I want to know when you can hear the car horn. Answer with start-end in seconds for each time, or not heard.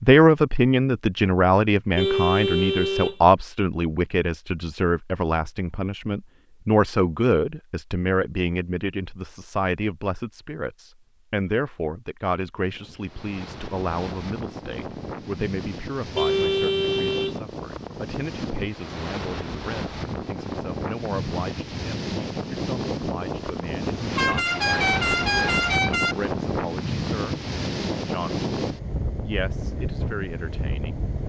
1.9-3.1, 16.1-17.4, 24.1-26.1.